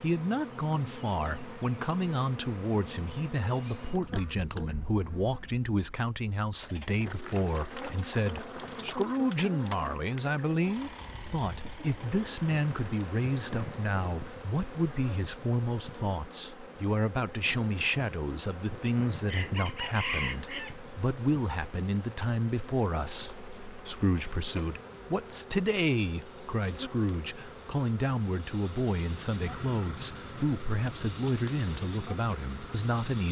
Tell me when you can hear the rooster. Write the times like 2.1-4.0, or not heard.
18.9-20.8.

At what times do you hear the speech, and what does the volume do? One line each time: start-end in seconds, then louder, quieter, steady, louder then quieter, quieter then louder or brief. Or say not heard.
0.0-33.2 steady.